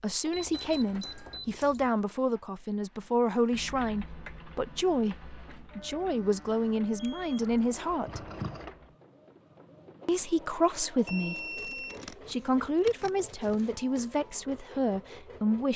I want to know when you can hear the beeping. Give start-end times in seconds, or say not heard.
0.2-1.6, 7.0-7.4, 11.1-12.0.